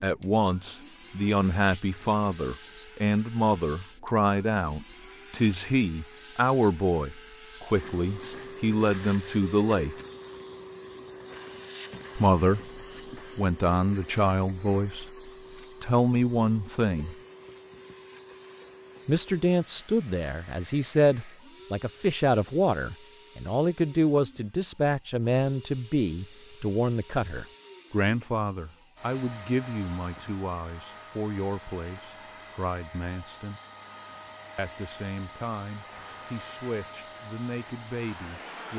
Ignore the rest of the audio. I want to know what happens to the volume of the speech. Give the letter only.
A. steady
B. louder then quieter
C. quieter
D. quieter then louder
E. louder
C.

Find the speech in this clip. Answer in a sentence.
The speech can be heard from 0.0 to 9.9 s, from 12.2 to 17.1 s, from 19.1 to 33.6 s and from 34.5 to 38.7 s.